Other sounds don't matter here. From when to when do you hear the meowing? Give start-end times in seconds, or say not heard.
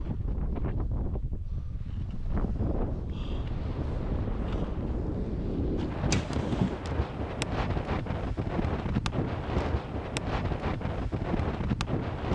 6.1-6.8.